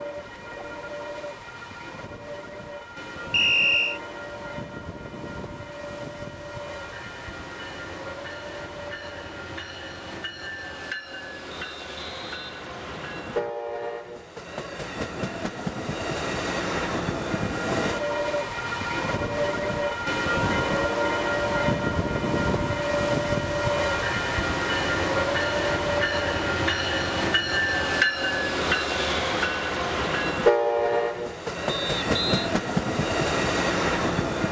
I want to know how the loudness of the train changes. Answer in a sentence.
The loudness of the train goes up.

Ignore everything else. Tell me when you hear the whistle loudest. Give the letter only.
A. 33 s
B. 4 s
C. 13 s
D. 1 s
B.